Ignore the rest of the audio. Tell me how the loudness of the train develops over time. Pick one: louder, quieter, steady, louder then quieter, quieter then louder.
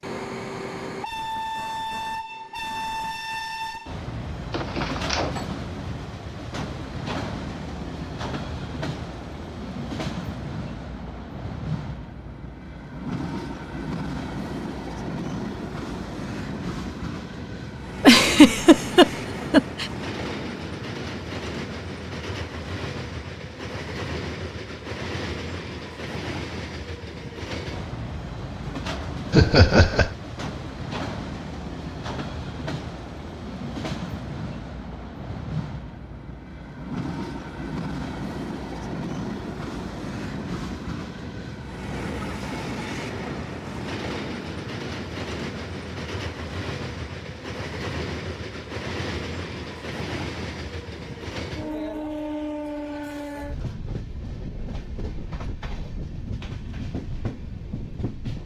steady.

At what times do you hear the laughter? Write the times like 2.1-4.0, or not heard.
18.0-19.9, 29.3-30.1.